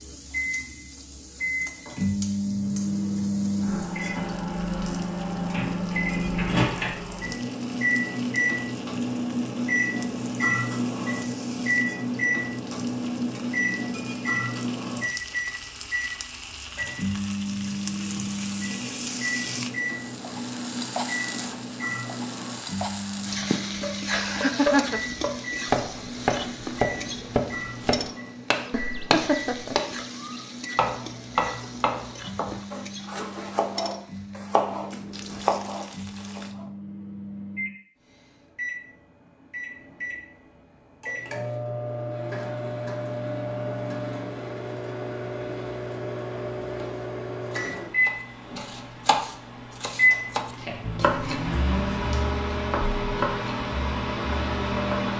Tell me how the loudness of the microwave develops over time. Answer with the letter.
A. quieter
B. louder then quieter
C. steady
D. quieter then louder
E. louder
D.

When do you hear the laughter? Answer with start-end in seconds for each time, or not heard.
23.4-25.0, 28.7-29.8.